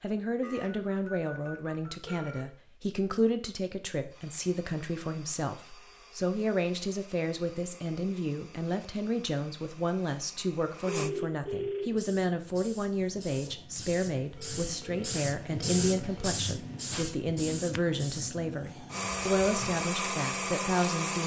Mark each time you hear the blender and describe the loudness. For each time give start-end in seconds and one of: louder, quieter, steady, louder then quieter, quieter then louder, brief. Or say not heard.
4.0-11.1 steady
18.9-21.2 brief.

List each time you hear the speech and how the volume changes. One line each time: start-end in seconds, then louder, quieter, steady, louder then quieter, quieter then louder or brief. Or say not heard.
0.0-21.2 steady.